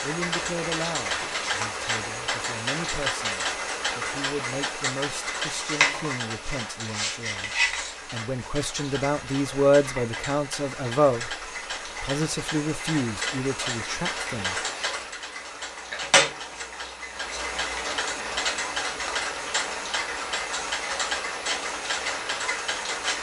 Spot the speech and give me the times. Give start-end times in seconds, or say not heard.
0.0-11.3, 12.0-14.6.